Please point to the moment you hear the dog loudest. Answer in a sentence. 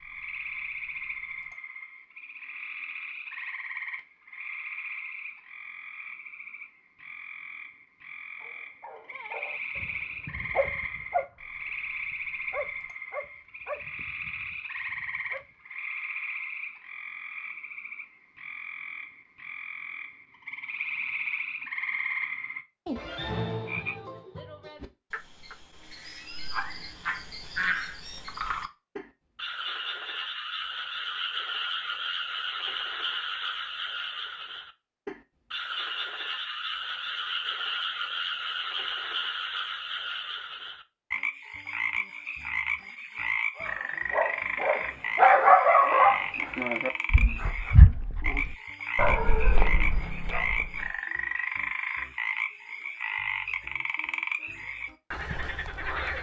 The loudest moment of the dog is at 45 seconds.